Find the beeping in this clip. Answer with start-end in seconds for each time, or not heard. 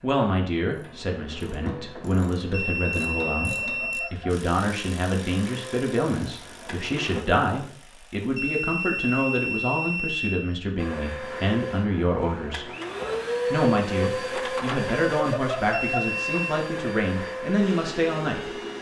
2.5-4.1, 8.3-10.5, 15.7-16.6.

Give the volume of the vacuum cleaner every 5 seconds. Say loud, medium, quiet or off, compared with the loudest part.
quiet, medium, loud, loud.